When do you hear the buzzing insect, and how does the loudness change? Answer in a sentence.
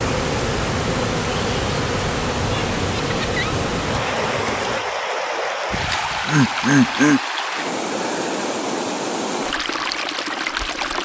The buzzing insect can be heard from 0.0 to 4.8 s, at a steady volume.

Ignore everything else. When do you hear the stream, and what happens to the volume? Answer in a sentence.
You can hear the stream from 0.0 to 11.0 s, at a steady volume.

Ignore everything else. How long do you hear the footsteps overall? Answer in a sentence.
The footsteps can't be heard in this clip.